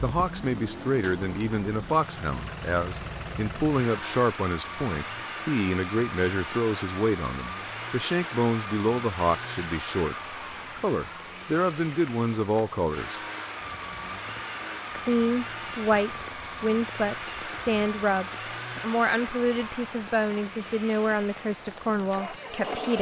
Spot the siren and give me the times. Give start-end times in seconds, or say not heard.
not heard.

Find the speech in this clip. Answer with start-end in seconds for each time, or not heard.
0.0-13.2, 14.9-22.9.